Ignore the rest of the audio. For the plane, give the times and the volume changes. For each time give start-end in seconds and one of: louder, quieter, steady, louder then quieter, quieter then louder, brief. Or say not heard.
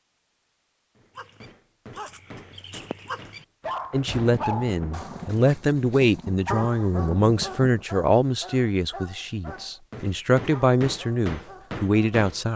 not heard.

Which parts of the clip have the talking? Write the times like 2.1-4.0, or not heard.
3.9-12.5.